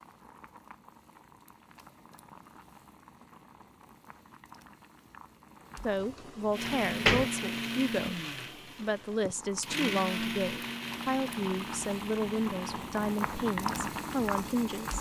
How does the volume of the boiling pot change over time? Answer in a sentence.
The loudness of the boiling pot goes up.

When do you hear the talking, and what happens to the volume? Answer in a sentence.
The talking can be heard from 5.8 to 14.9 s, at a steady volume.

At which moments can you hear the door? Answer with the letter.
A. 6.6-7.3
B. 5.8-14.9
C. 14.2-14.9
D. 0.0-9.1
A.